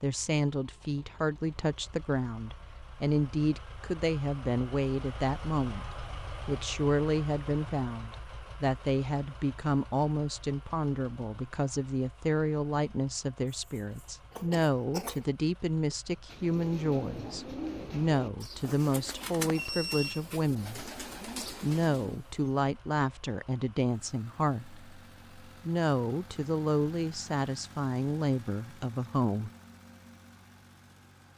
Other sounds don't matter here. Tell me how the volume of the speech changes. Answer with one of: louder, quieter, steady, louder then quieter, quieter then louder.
steady.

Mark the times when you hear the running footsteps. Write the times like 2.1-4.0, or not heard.
not heard.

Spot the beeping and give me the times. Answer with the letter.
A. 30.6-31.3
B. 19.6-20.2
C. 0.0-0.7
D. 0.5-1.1
B.